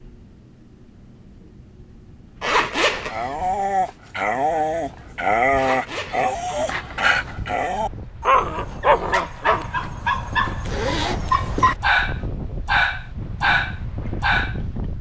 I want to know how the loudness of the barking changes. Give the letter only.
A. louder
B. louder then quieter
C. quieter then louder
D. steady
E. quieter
D.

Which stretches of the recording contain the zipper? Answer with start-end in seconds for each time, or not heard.
2.4-3.1, 5.5-7.1, 10.7-11.8.